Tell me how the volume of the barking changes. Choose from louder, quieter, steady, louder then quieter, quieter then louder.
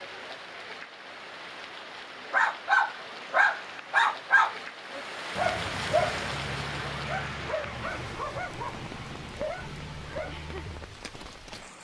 quieter.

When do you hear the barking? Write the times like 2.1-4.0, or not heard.
2.3-10.8.